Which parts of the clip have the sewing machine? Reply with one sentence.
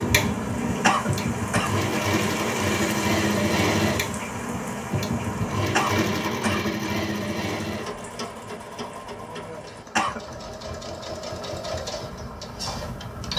The sewing machine can be heard from 0.0 to 13.3 s.